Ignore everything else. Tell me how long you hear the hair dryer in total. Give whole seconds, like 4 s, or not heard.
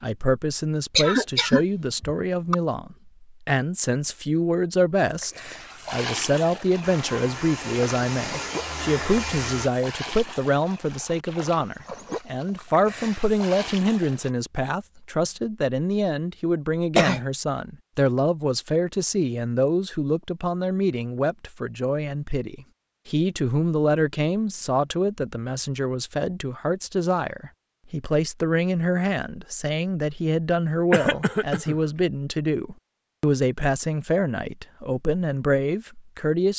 3 s.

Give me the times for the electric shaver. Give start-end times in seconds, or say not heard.
not heard.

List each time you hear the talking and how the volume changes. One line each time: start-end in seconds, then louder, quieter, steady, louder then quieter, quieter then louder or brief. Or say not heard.
0.0-36.5 steady.